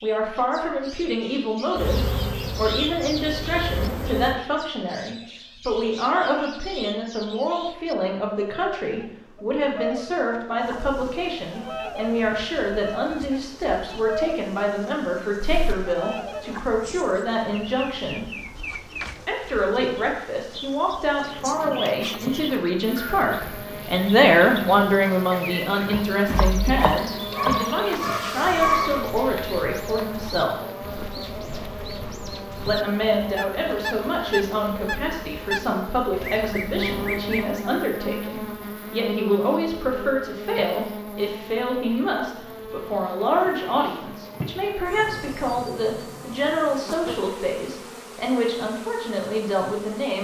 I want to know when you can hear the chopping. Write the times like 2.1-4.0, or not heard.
25.9-27.6.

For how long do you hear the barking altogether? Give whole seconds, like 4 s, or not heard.
2 s.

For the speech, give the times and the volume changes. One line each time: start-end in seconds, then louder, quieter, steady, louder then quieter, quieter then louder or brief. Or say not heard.
0.0-18.2 steady
19.2-30.6 louder then quieter
32.6-50.1 steady.